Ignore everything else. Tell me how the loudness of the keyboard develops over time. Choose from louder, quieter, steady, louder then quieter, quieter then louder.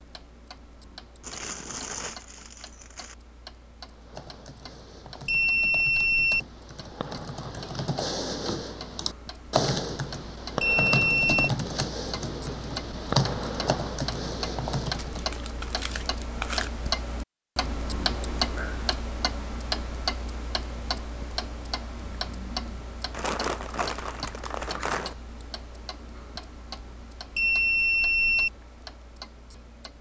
louder.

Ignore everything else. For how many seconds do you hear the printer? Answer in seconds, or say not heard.
not heard.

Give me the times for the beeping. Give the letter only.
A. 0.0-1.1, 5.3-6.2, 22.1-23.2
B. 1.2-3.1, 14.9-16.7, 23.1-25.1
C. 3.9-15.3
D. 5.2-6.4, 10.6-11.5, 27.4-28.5
D.